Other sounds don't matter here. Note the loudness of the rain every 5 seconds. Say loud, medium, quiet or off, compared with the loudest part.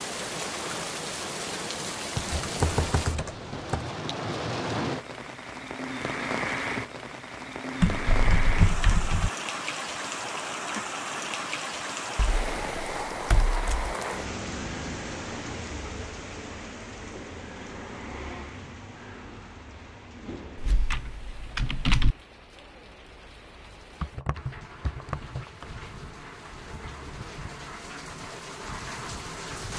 loud, loud, loud, medium, quiet, medium.